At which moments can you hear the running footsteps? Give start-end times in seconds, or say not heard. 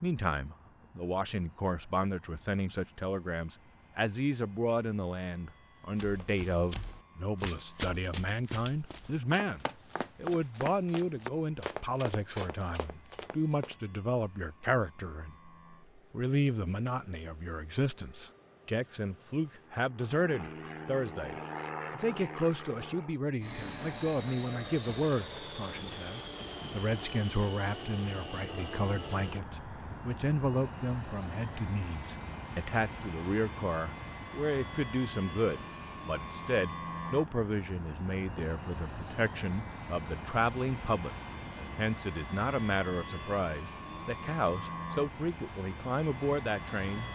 5.8-13.8.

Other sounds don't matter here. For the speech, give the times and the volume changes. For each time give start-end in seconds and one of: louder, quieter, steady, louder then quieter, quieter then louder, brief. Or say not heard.
0.0-47.1 steady.